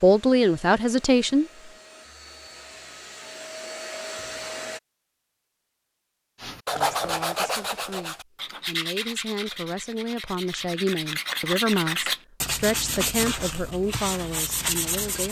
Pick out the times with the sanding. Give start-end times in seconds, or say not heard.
6.4-15.2.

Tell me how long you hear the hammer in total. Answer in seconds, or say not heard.
not heard.